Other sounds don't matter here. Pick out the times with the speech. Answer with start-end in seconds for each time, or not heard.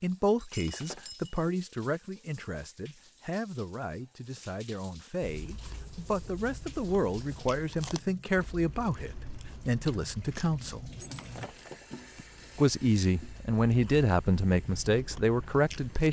0.0-10.8, 12.6-16.0.